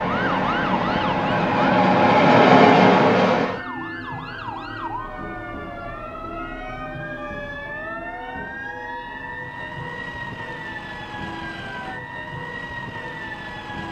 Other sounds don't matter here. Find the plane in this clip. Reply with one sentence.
You can hear the plane from 0.0 to 3.6 s.